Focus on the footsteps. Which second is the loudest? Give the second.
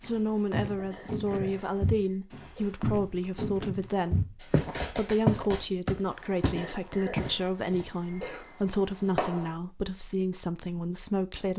5 s.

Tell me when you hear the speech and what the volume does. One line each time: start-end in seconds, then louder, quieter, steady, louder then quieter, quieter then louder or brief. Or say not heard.
0.0-11.5 steady.